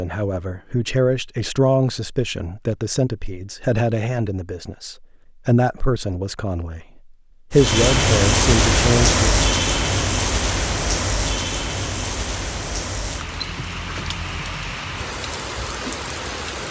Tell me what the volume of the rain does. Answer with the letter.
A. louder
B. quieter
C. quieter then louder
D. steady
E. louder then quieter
B.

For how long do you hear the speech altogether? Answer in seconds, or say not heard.
9 s.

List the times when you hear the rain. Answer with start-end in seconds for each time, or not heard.
7.5-16.6.